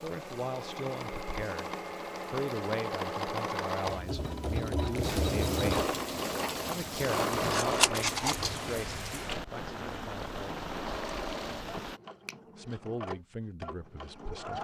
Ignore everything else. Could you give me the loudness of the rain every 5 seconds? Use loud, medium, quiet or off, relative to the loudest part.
quiet, loud, loud.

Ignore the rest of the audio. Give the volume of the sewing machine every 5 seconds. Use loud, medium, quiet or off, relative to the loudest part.
loud, loud, medium.